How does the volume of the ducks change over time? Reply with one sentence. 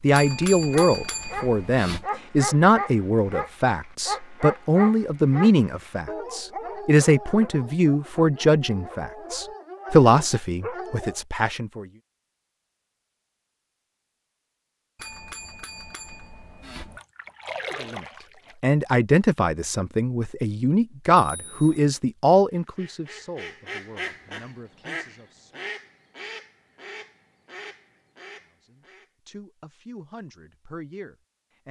The loudness of the ducks goes down.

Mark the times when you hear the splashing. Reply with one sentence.
You can hear the splashing from 16.9 to 18.6 s.